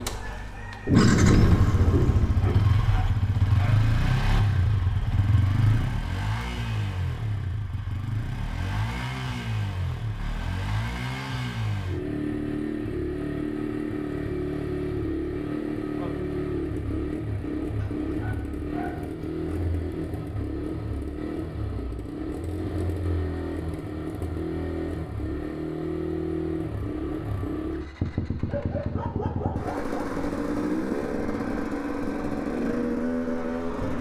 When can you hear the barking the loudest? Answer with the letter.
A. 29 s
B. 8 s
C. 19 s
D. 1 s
A.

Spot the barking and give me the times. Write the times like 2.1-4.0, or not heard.
2.4-3.8, 17.8-19.6, 28.4-29.9.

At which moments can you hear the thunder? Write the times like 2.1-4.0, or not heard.
0.8-2.6.